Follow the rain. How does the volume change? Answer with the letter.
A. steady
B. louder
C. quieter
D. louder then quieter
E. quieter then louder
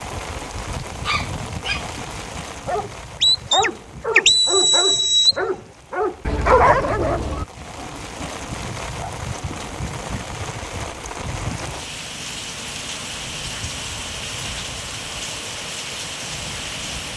E.